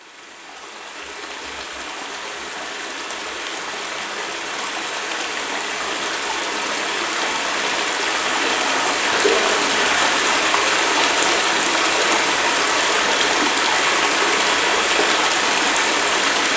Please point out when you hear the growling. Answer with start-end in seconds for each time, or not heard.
not heard.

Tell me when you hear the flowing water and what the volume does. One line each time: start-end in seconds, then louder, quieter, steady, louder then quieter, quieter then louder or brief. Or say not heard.
0.0-16.5 louder.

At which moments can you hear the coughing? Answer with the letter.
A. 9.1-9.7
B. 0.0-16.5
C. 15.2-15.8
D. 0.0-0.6
A.